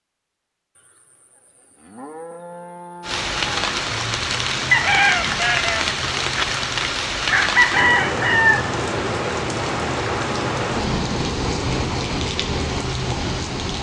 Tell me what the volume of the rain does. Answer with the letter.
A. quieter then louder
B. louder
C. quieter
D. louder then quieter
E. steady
E.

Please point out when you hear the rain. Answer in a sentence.
You can hear the rain from 3.0 to 13.7 s.